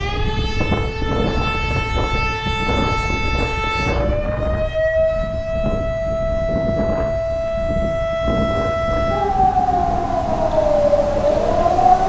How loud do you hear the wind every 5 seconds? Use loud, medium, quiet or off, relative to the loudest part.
loud, loud, medium.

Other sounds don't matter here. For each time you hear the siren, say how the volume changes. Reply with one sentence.
You can hear the siren from 0.0 to 12.0 s, getting louder.